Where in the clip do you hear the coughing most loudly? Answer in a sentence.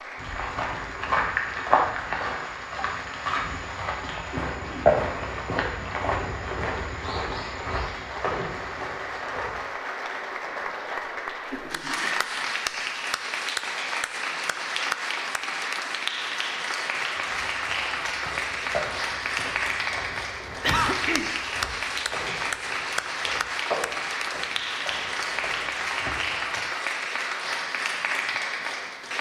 The loudest moment of the coughing is at 21 seconds.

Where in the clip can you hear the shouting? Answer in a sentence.
You can't hear the shouting here.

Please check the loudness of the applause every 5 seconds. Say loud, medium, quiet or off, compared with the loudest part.
medium, medium, loud, loud, loud, loud.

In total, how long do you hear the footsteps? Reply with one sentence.
You can hear the footsteps for 19 seconds altogether.